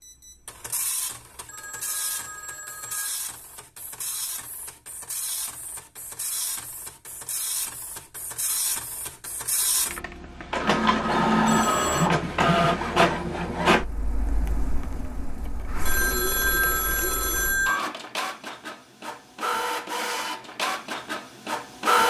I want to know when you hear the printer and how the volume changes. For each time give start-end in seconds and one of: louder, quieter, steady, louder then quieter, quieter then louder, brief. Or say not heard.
0.0-22.0 louder then quieter.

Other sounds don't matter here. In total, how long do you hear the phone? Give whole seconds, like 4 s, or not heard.
4 s.